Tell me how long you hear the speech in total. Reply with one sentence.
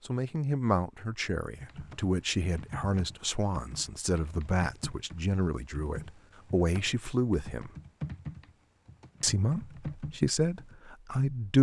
The speech can be heard for 10 seconds in total.